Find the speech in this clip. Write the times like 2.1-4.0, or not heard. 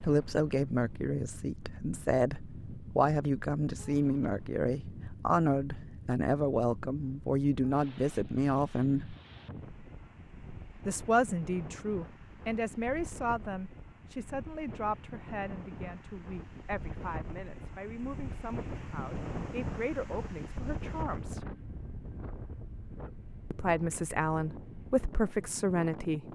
0.0-9.2, 10.8-21.4, 23.5-26.2.